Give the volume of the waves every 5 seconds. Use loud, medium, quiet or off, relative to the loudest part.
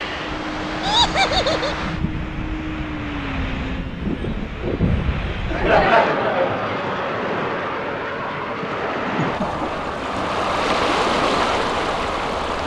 medium, medium, loud.